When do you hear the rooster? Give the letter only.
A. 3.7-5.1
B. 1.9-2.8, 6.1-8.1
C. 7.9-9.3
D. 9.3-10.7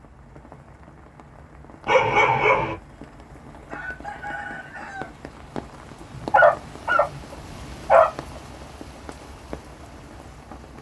A.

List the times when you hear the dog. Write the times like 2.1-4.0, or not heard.
1.9-2.8, 6.1-8.1.